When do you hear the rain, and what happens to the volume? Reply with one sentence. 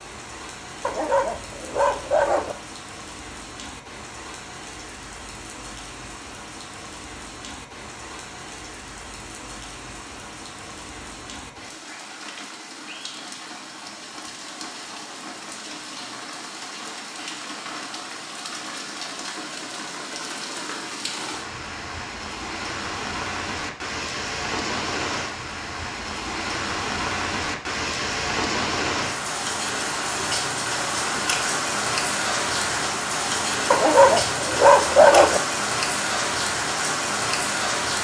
You can hear the rain from 0.0 to 37.9 s, getting louder.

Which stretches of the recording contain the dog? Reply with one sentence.
You can hear the dog from 0.8 to 2.5 s and from 33.7 to 35.4 s.